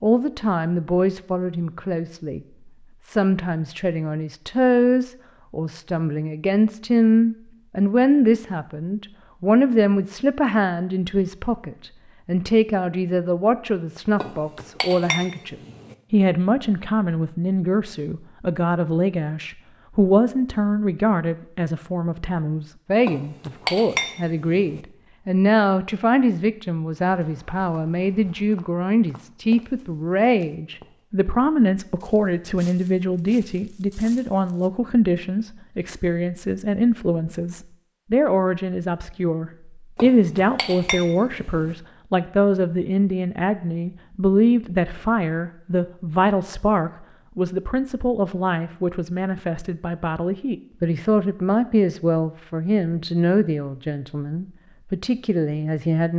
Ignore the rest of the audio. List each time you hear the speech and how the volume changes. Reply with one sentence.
You can hear the speech briefly from 0.0 to 2.4 s; and from 3.0 to 56.1 s, at a steady volume.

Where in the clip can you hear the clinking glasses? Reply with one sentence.
You can hear the clinking glasses from 14.2 to 15.9 s, from 23.1 to 24.8 s and from 40.0 to 41.8 s.